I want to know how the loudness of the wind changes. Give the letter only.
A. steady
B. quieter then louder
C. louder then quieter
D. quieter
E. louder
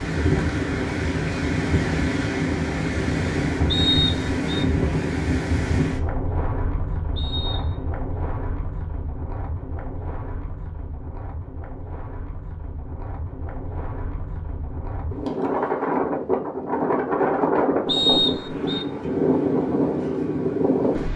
B.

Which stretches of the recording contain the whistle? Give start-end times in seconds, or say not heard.
3.7-4.7, 7.2-7.8, 17.9-18.9.